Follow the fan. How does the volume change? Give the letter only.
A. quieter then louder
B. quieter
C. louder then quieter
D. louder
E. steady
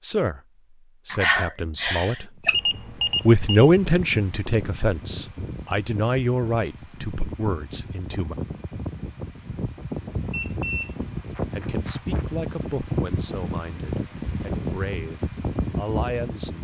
D.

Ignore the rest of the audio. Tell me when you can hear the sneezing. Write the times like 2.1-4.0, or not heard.
1.1-2.6.